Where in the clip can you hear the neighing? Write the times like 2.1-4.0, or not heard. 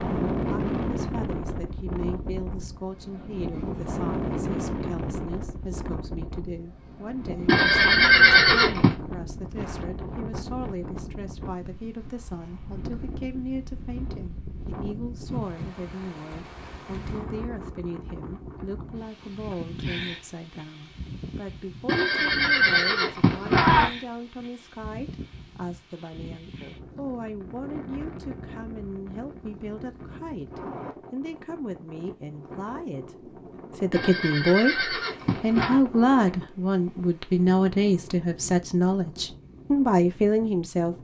7.5-8.9, 21.9-23.9, 33.9-35.8.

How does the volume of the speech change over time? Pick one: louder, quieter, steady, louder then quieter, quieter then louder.
louder.